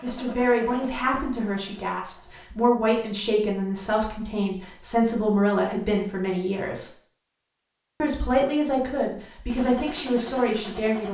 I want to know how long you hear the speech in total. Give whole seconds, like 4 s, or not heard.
10 s.